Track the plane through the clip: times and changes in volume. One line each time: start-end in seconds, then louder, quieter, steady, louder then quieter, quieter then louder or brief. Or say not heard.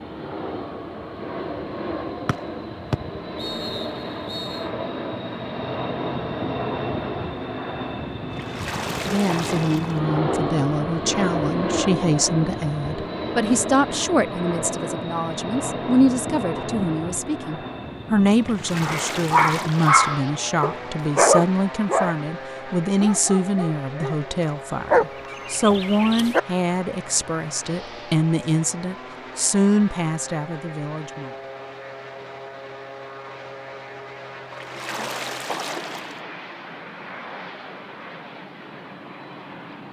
0.0-39.8 quieter.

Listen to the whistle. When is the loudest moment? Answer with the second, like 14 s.
3 s.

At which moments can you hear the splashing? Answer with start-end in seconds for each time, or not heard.
8.3-10.0, 18.4-19.9, 34.5-36.2.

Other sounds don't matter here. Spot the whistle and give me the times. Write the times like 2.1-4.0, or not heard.
2.2-4.7.